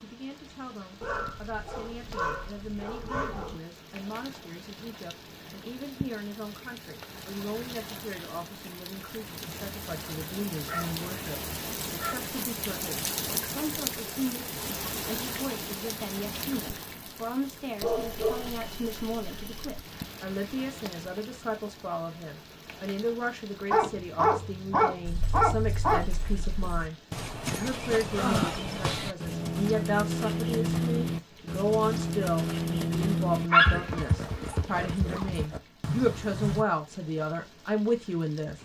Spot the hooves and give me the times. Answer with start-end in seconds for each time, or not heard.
25.1-36.6.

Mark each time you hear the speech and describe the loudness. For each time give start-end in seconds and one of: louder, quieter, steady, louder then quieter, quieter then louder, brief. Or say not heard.
0.0-38.6 louder.